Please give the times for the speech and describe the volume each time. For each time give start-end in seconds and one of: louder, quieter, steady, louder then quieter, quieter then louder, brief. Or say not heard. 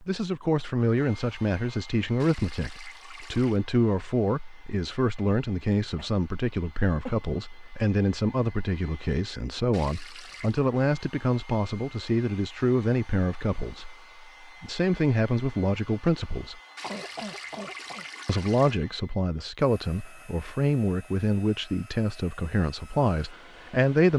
0.0-16.6 steady
18.2-24.1 steady.